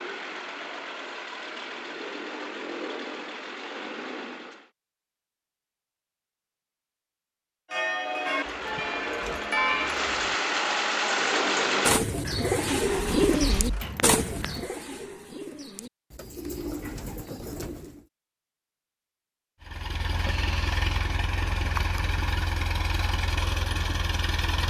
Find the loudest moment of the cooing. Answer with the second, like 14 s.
13 s.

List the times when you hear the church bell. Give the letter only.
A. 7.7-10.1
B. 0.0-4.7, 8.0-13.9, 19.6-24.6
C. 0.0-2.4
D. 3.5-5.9
A.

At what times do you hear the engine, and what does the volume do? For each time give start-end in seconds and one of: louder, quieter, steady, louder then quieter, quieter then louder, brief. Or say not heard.
0.0-4.7 steady
8.0-13.9 louder then quieter
19.6-24.6 steady.